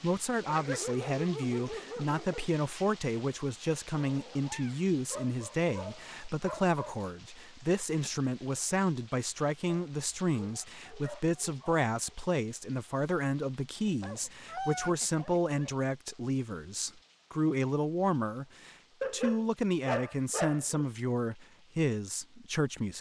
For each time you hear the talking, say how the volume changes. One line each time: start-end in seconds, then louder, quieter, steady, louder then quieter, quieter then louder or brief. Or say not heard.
0.0-22.9 steady.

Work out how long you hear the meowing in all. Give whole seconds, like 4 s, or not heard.
2 s.